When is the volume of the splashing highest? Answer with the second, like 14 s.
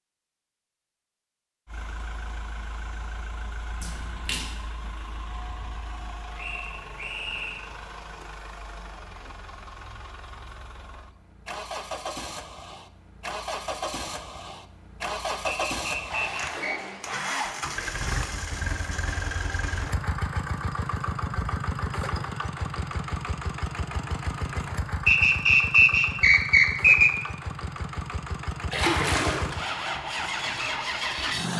29 s.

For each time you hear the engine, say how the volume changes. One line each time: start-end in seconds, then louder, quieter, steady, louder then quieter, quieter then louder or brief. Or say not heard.
1.6-31.5 louder.